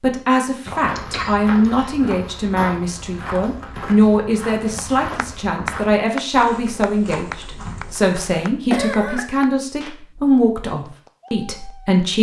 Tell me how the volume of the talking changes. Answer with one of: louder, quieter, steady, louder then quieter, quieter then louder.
steady.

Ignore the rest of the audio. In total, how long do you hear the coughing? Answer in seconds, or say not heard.
2 s.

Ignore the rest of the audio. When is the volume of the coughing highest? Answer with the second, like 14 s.
9 s.